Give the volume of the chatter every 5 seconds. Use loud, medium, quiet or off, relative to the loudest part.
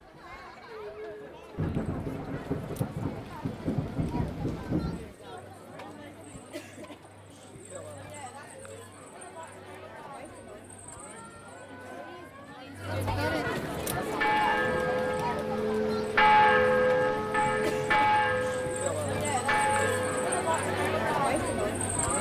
quiet, quiet, medium, medium, loud.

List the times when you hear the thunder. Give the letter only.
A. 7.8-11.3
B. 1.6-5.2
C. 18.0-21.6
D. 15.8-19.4
B.